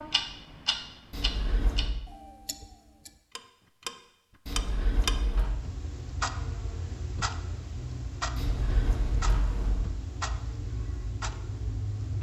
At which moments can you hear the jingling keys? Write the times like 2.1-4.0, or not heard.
1.1-1.9, 4.5-5.5, 8.3-9.9.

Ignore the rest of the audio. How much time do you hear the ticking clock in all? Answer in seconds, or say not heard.
12 s.